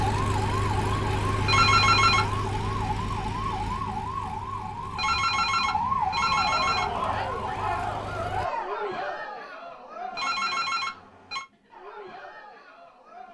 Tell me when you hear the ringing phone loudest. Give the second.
2 s.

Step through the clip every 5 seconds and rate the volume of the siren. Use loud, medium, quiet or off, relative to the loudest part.
loud, loud, off.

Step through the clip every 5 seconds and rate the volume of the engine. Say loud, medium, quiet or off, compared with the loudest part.
loud, medium, off.